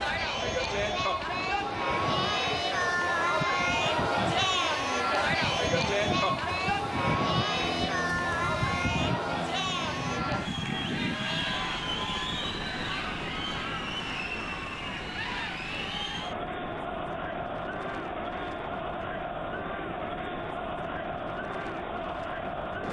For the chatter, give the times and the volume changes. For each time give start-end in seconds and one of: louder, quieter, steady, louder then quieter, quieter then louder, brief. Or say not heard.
0.0-22.8 quieter.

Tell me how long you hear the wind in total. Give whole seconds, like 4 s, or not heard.
23 s.